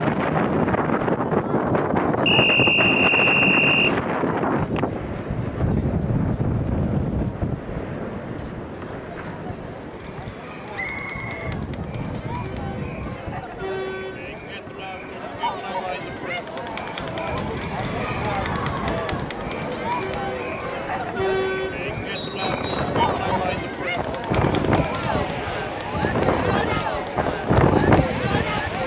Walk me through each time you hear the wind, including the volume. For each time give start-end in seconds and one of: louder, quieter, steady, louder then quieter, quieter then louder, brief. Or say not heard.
0.0-28.8 quieter then louder.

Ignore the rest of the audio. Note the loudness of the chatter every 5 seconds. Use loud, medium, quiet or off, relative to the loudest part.
quiet, quiet, medium, loud, loud, loud.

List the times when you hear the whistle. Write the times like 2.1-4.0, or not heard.
2.2-4.0, 10.7-12.2, 22.1-23.0.